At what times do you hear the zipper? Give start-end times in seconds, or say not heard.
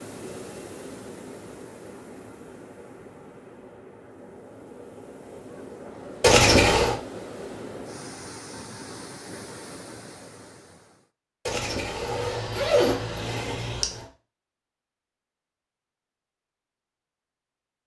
6.2-7.0, 11.4-14.1.